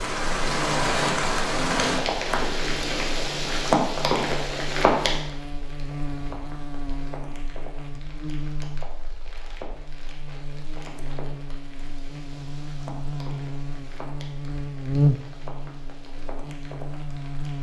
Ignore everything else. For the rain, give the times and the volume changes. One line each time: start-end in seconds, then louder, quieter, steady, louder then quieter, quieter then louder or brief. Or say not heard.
0.0-17.5 quieter.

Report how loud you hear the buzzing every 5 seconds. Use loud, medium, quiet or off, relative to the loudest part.
medium, medium, medium, loud.